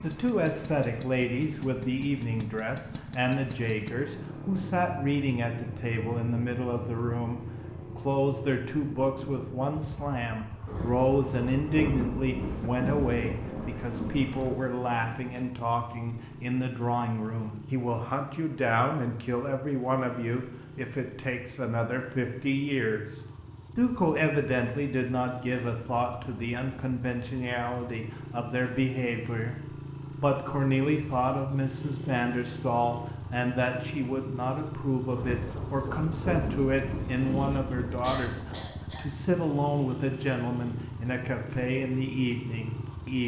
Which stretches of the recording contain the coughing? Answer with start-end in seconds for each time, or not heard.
38.0-39.0.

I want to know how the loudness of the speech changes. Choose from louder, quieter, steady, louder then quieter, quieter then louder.
steady.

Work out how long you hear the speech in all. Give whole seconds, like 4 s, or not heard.
43 s.